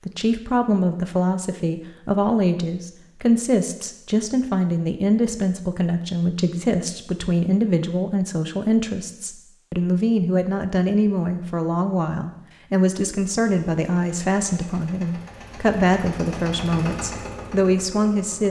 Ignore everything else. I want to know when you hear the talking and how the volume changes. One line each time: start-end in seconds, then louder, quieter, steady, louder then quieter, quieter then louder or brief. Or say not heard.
0.1-18.4 steady.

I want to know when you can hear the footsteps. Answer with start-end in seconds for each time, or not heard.
not heard.